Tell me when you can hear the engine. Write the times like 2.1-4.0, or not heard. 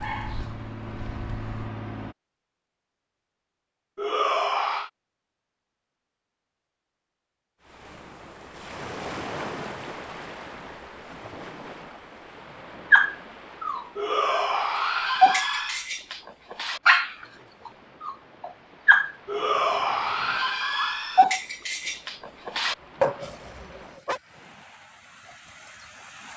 0.0-2.1.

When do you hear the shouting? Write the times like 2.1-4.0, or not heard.
4.0-4.9, 13.9-15.8, 19.2-21.2.